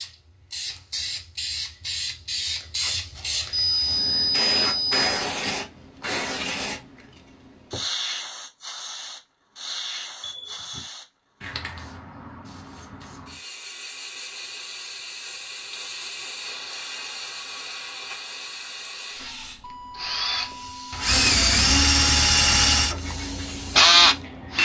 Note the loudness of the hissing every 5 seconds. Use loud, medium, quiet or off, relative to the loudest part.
loud, loud, medium, medium, medium.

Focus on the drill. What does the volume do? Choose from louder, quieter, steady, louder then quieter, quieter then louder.
louder.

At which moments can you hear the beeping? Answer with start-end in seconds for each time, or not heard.
3.5-5.1, 10.2-10.9, 19.2-21.1.